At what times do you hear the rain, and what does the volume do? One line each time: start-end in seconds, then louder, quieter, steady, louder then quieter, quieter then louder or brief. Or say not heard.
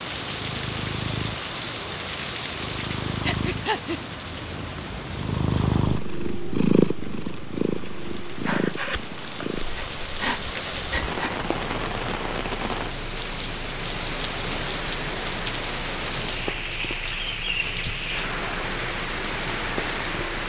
0.0-20.4 quieter then louder.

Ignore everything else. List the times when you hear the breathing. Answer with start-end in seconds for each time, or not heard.
3.2-4.0, 8.4-11.3, 17.9-18.3.